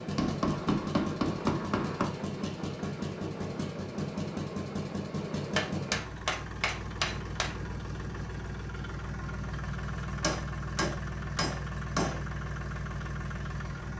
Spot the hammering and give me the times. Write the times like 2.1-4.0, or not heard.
0.1-2.0, 5.5-7.5, 10.2-12.2.